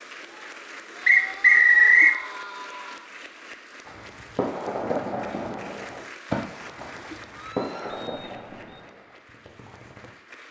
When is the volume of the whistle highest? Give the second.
2 s.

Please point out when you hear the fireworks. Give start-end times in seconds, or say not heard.
3.9-10.1.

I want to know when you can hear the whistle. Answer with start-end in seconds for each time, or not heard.
1.1-2.1, 7.9-8.8.